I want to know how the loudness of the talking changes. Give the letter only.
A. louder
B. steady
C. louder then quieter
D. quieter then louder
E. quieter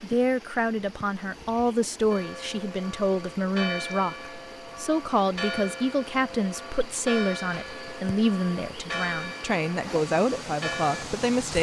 B.